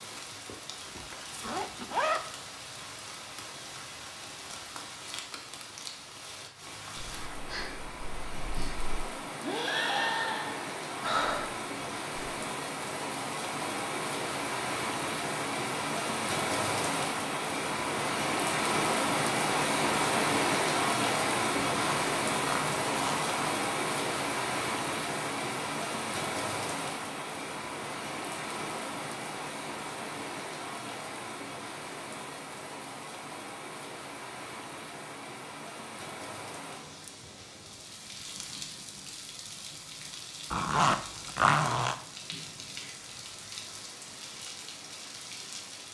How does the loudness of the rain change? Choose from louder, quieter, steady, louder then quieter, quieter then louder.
louder then quieter.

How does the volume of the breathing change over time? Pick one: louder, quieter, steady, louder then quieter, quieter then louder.
louder then quieter.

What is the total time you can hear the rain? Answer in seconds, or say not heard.
46 s.